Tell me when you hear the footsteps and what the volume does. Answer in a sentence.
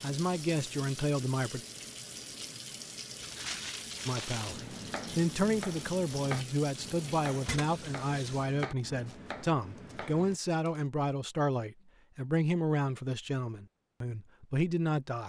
The footsteps can't be heard in this clip.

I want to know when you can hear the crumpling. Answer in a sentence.
The crumpling can be heard from 3.2 to 4.5 s and from 10.0 to 10.8 s.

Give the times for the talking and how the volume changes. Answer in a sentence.
The talking can be heard briefly from 0.0 to 1.6 s; and from 4.0 to 15.2 s, at a steady volume.